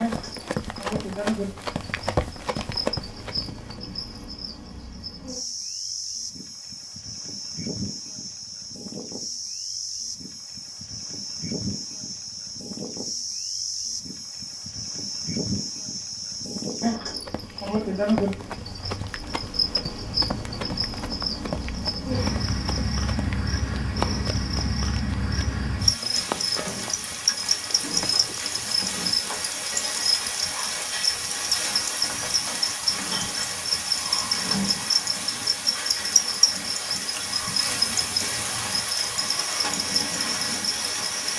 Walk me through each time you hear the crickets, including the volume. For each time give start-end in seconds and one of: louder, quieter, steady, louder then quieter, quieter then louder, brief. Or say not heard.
0.0-41.3 louder.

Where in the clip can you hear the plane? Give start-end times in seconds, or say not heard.
not heard.